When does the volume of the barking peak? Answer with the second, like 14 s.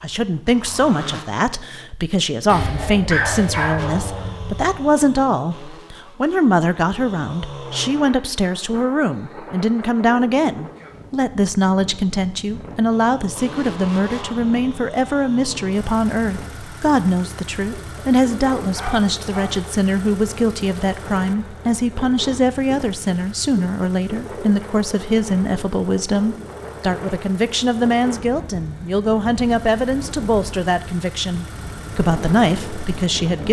3 s.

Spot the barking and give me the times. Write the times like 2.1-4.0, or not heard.
2.5-4.8, 18.6-19.6.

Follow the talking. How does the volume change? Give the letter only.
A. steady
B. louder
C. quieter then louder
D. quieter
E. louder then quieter
A.